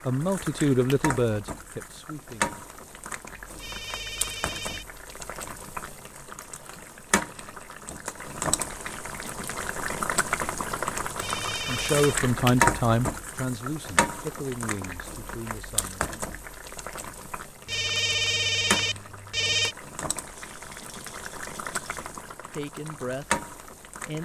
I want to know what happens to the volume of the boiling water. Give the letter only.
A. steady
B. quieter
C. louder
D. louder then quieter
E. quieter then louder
D.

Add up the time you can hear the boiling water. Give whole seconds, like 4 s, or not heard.
24 s.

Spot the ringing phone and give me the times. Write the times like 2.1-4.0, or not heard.
3.5-4.8, 11.2-12.2, 17.6-19.8.